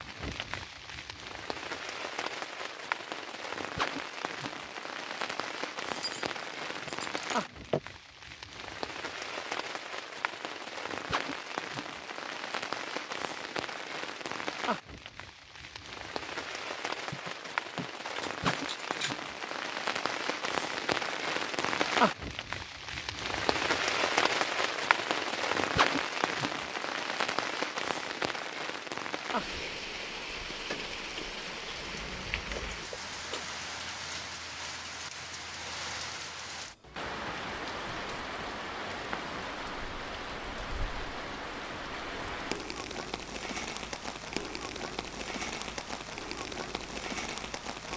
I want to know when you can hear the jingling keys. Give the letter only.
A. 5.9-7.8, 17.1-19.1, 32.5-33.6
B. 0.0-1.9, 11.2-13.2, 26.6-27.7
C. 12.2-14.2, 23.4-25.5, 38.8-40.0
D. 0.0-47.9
A.